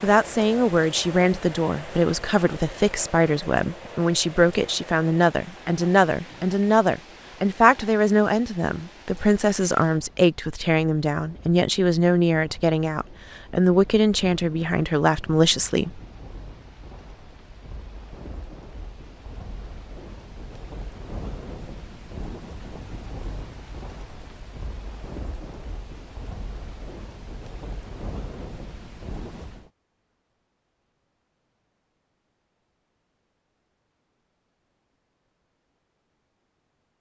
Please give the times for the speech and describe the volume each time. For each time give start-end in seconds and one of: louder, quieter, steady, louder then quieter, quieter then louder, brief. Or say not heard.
0.0-16.0 steady.